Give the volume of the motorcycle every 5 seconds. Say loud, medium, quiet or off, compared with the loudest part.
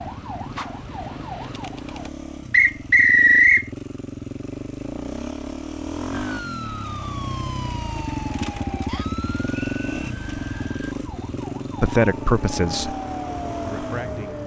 medium, loud, loud.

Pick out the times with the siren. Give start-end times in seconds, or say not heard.
0.0-2.1, 6.1-14.4.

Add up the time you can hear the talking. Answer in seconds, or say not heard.
3 s.